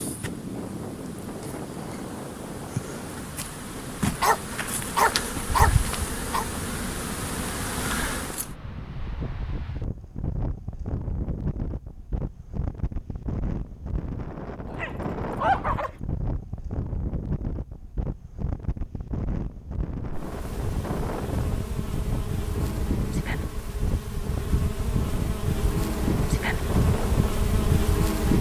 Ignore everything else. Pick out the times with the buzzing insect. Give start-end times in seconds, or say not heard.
0.0-8.5, 20.0-28.3.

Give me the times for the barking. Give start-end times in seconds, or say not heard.
4.2-6.5, 14.7-15.9.